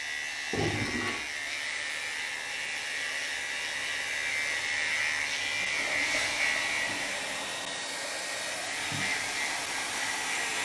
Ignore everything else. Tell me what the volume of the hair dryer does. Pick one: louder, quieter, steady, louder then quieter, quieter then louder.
louder.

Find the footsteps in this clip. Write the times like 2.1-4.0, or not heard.
not heard.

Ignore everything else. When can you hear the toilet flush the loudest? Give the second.
1 s.